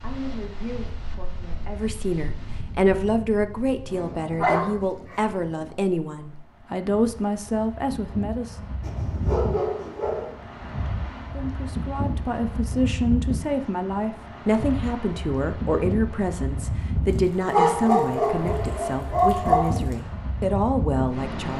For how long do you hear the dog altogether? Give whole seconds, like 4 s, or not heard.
5 s.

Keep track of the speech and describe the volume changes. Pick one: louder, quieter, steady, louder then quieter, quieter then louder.
steady.